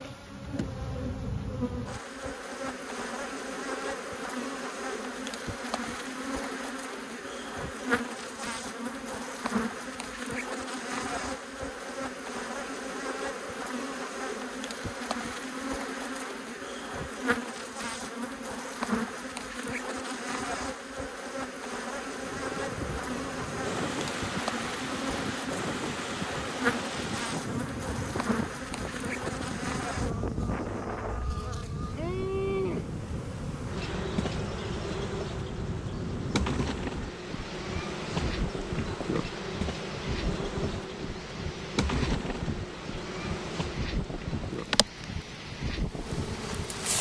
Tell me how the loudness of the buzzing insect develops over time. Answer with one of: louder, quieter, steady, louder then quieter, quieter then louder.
steady.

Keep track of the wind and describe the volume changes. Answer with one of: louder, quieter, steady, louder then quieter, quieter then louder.
steady.